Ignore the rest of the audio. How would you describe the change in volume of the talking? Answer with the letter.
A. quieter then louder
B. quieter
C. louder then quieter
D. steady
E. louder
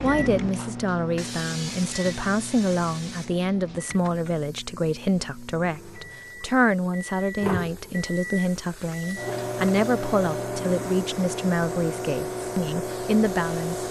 D.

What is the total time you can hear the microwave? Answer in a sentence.
You can hear the microwave for 14 seconds altogether.